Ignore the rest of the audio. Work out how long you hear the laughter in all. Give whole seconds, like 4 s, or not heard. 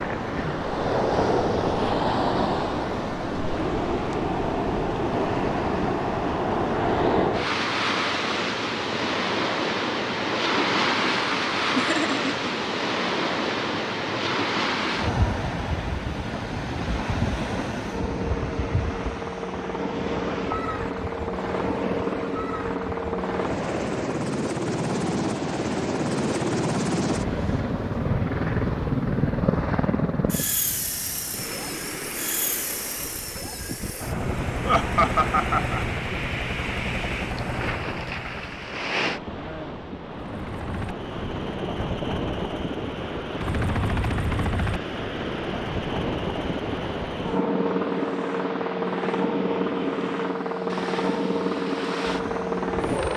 2 s.